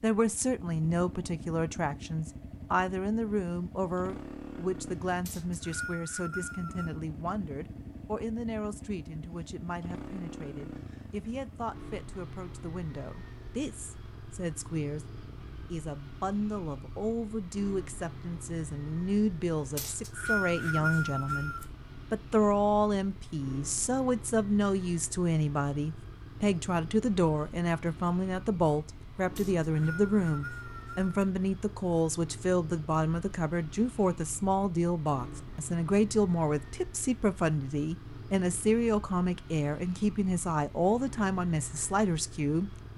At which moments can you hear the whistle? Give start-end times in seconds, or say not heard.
5.2-7.0, 19.8-21.6, 29.4-31.1.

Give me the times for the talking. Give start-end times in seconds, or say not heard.
0.0-42.7.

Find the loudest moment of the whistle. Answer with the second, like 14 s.
20 s.